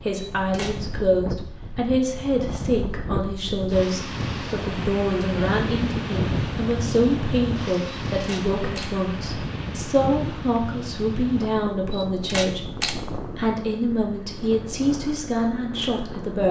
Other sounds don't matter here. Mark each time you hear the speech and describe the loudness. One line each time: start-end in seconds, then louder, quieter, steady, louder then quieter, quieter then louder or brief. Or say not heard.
0.1-16.4 steady.